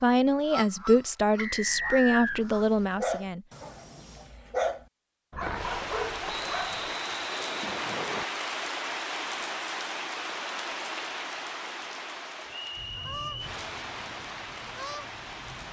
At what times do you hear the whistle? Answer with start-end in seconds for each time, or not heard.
1.4-2.4, 6.2-8.2, 12.4-13.5.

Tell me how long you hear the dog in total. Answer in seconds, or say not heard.
5 s.